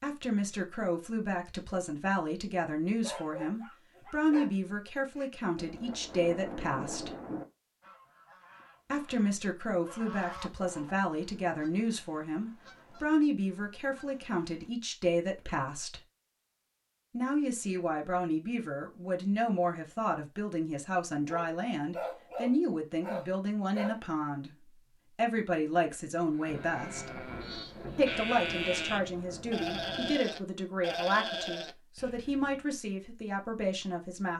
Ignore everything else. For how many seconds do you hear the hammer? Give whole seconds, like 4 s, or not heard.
not heard.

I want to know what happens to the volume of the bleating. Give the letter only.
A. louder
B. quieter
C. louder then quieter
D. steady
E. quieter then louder
A.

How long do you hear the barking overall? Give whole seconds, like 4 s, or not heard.
5 s.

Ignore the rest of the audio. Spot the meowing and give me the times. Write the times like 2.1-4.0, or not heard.
not heard.